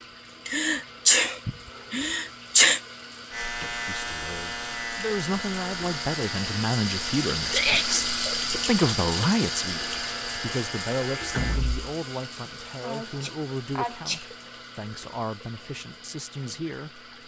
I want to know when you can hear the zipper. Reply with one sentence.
You can't hear the zipper here.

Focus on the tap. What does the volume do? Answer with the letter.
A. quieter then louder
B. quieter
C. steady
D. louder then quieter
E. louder
D.